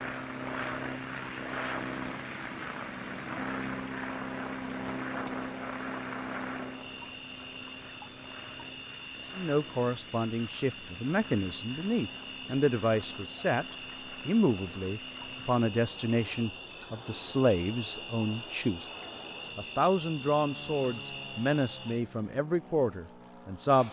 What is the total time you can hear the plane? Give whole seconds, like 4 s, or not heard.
24 s.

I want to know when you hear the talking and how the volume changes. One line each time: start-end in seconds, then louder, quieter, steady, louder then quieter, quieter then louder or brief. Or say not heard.
9.3-18.9 steady
19.6-23.8 steady.